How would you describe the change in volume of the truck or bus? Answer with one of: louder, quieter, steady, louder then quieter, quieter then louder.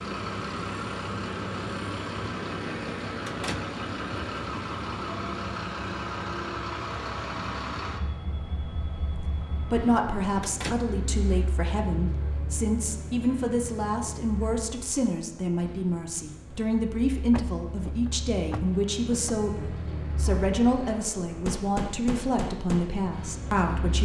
quieter then louder.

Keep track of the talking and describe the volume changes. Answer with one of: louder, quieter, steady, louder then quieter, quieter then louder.
steady.